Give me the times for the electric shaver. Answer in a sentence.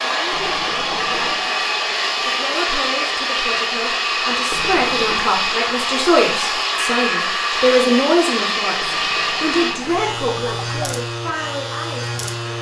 The electric shaver can be heard from 9.7 to 12.5 s.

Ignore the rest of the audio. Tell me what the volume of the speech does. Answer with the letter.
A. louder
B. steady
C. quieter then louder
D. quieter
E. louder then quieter
E.